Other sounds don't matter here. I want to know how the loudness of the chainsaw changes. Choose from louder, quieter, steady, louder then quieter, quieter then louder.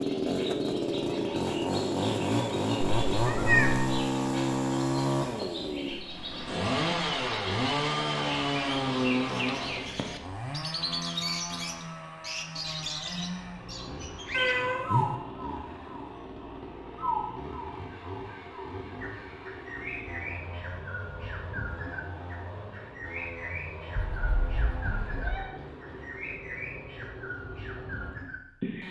quieter.